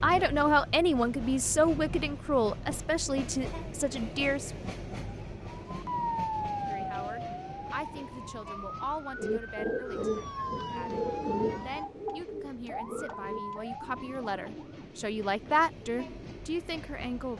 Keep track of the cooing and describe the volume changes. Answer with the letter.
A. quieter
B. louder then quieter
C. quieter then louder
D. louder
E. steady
A.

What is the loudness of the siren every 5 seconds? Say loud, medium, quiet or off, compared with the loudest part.
off, loud, loud, off.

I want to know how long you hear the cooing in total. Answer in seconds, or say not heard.
7 s.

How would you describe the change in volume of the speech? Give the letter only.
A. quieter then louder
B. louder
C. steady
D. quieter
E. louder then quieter
A.